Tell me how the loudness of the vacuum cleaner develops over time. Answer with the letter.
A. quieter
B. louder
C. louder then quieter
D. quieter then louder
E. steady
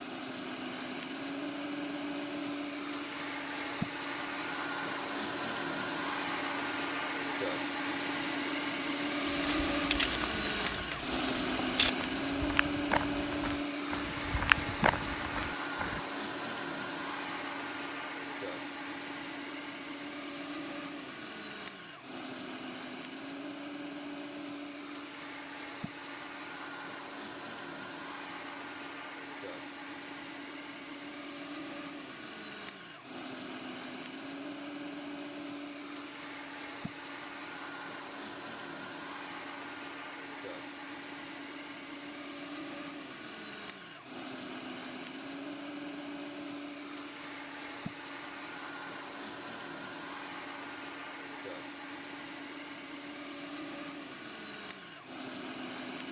A.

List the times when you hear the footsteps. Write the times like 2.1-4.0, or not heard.
9.2-16.0.